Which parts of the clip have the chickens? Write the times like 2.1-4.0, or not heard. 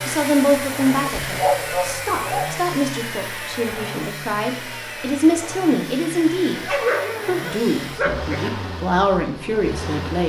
not heard.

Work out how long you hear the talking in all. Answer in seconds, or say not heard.
10 s.